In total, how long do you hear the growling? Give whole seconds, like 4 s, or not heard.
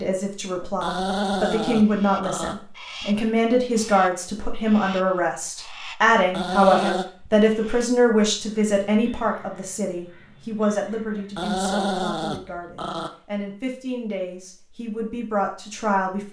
5 s.